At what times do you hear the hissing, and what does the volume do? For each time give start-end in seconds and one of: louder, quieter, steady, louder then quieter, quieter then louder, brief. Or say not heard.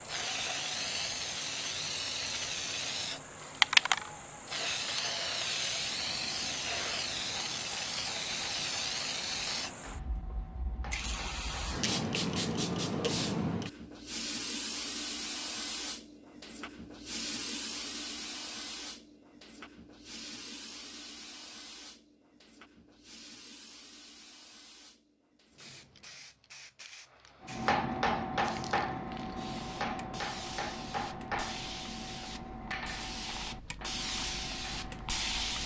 0.0-35.6 quieter then louder.